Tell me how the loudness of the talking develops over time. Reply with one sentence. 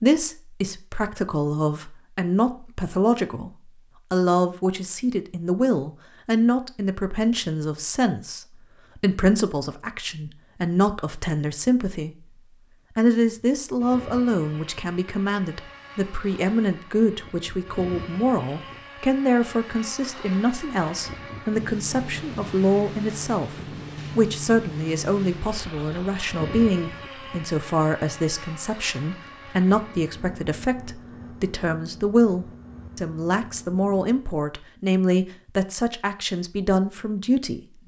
The volume of the talking stays about the same.